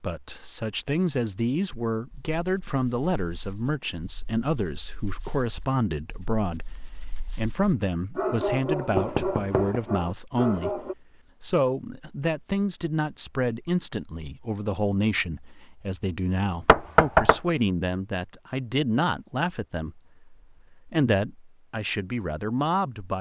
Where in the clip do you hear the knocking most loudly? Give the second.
17 s.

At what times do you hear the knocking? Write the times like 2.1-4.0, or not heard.
8.9-9.8, 16.6-17.4.